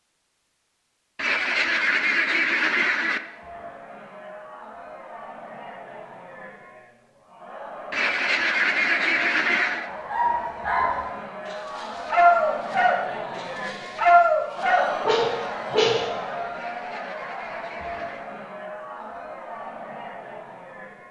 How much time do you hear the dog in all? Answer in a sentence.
The dog can be heard for 6 seconds in total.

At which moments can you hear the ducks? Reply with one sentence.
You can hear the ducks from 1.1 to 3.2 s, from 7.9 to 9.9 s and from 16.6 to 18.3 s.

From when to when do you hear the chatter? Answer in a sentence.
You can hear the chatter from 3.1 to 21.0 s.